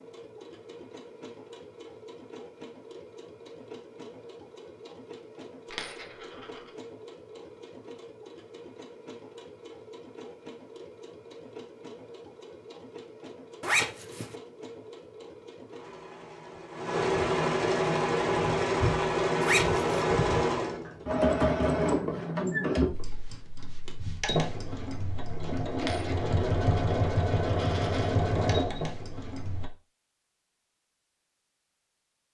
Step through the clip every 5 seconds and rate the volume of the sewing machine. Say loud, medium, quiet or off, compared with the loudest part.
quiet, quiet, quiet, loud, loud, loud, off.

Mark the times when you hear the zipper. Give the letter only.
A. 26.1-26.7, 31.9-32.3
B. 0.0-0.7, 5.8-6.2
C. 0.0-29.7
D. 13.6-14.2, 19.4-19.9
D.